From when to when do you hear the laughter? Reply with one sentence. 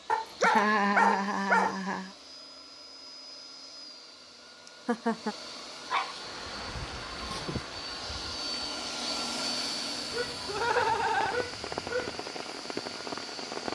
You can hear the laughter from 0.4 to 2.1 s, from 4.7 to 5.3 s and from 10.4 to 11.4 s.